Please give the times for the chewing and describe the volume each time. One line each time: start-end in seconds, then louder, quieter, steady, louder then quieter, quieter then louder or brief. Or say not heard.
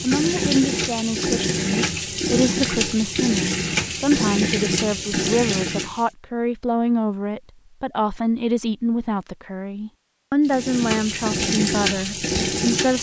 not heard.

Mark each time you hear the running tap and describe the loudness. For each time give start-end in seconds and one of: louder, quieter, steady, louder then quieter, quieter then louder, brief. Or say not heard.
0.0-6.1 steady
10.4-12.9 brief.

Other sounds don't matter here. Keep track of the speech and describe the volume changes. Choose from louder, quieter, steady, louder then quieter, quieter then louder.
steady.